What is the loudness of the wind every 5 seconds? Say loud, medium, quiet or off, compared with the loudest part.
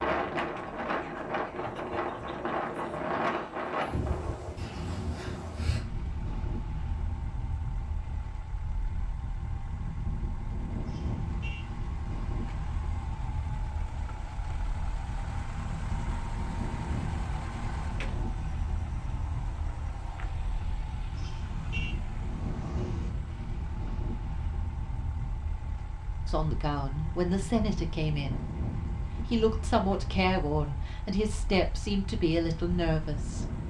loud, medium, medium, medium, medium, medium, medium.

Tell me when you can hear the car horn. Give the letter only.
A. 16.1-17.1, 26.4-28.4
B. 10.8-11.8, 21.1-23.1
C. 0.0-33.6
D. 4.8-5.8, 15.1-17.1
B.